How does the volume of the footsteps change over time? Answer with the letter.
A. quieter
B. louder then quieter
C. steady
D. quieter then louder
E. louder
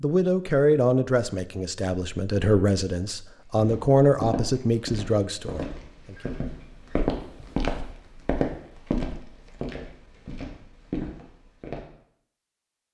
B.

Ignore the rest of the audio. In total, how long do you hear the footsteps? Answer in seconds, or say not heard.
8 s.